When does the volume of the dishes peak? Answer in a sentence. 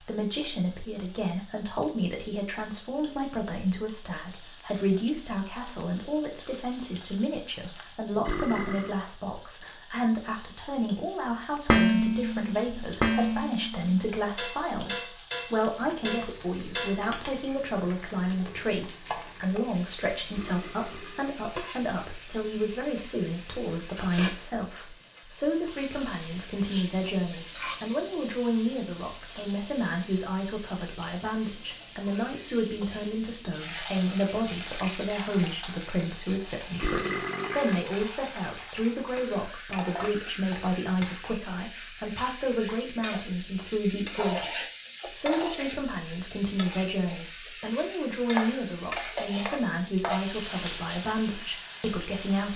The loudest moment of the dishes is at 12 seconds.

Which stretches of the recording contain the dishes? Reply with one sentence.
The dishes can be heard from 11.7 to 17.6 s.